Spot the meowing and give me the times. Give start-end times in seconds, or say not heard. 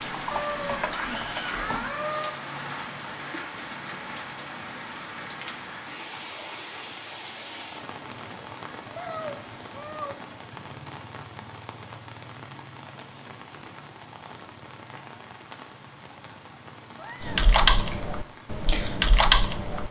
0.3-2.3, 8.9-10.2, 16.9-18.1.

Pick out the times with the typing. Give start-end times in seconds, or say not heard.
0.1-2.0, 17.2-19.8.